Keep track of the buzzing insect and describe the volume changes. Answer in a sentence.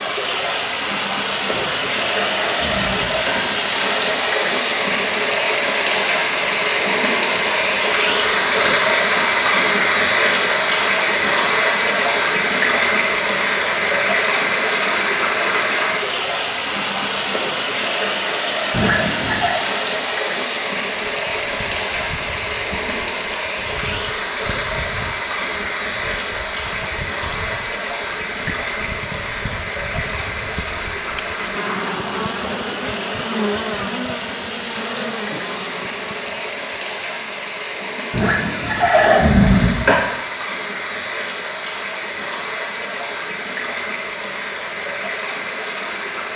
The loudness of the buzzing insect goes up.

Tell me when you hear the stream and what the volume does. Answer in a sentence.
You can hear the stream from 0.0 to 46.3 s, getting quieter.